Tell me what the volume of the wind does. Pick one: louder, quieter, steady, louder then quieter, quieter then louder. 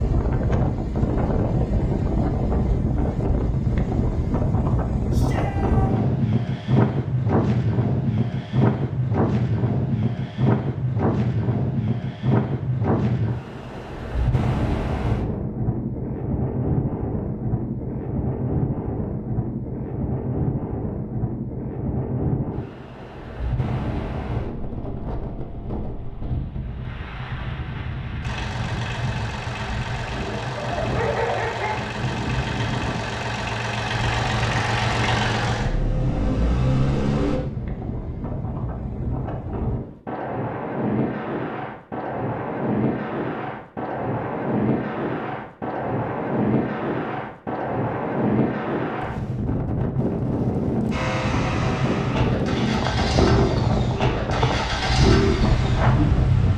quieter then louder.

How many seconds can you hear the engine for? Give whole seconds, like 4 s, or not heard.
15 s.